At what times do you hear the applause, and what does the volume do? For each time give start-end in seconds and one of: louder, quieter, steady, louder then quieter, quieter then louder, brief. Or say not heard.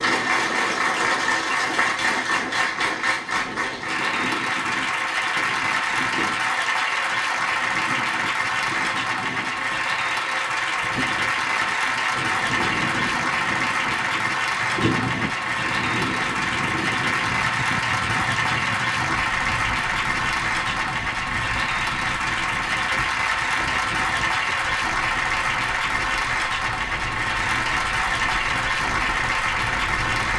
0.0-30.3 steady.